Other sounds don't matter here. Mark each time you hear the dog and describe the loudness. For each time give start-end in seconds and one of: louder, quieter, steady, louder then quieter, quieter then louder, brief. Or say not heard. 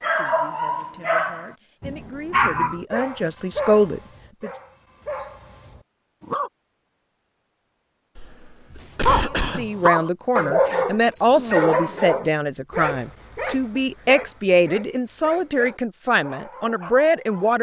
0.0-6.5 quieter then louder
9.1-17.5 quieter.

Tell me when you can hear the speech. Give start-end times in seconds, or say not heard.
0.0-4.5, 9.4-17.5.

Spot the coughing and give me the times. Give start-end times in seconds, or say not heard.
8.2-9.7.